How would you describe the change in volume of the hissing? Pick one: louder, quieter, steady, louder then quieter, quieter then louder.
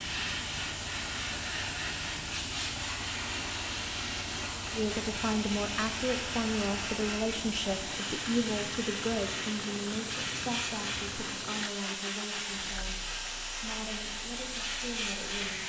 steady.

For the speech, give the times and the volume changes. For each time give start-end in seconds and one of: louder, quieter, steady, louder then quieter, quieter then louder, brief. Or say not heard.
4.7-15.6 quieter.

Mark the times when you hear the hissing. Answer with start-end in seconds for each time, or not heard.
0.0-15.6.